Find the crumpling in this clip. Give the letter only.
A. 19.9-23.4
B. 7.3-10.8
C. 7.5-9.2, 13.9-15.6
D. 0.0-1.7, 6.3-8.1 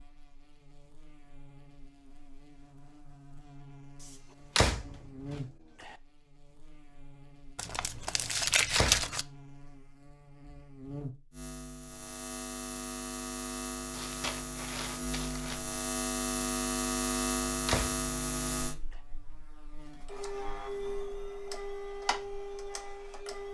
C.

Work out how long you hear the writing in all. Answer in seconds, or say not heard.
not heard.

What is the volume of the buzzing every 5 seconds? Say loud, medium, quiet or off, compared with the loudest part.
quiet, quiet, medium, loud, quiet.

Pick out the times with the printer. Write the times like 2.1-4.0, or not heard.
19.9-23.4.